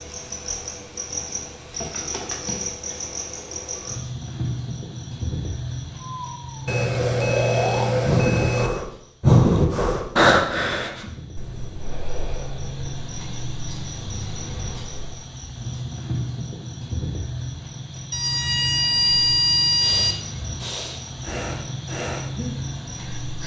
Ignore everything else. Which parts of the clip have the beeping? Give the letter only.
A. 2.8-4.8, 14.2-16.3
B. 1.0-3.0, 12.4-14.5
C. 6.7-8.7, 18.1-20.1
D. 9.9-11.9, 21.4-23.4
C.